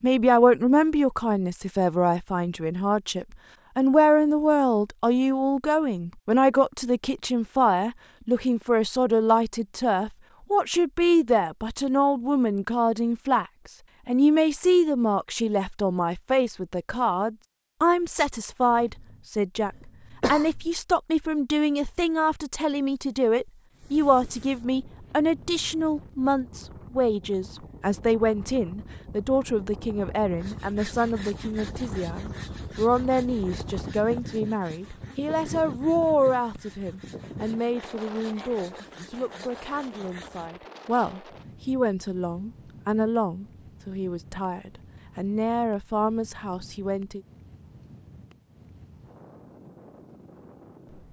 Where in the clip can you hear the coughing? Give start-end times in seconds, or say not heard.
18.7-20.7.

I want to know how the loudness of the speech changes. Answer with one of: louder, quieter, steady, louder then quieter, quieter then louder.
quieter.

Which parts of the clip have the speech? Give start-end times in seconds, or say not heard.
0.0-13.4, 14.1-47.2.